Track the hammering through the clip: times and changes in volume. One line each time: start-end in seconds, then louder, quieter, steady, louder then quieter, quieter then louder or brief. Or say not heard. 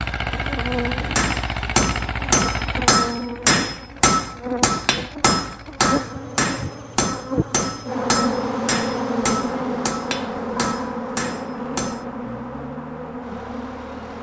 1.1-12.1 quieter.